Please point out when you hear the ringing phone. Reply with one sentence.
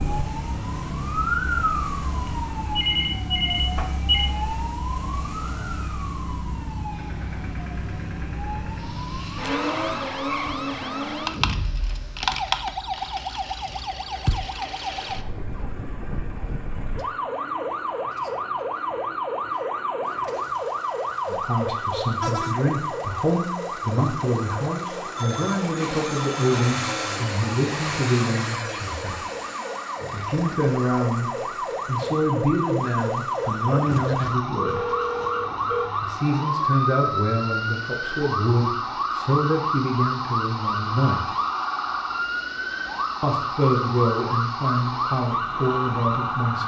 You can hear the ringing phone from 2.8 to 4.3 s, from 25.1 to 26.9 s and from 34.6 to 35.9 s.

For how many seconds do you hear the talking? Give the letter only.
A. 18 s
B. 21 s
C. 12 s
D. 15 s
B.